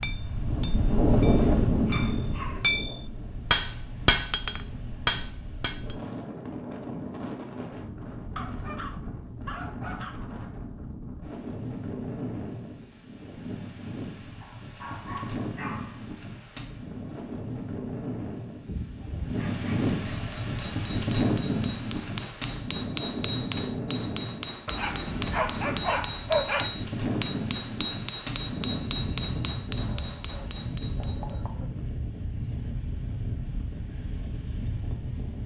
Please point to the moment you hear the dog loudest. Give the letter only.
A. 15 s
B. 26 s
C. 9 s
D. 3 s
B.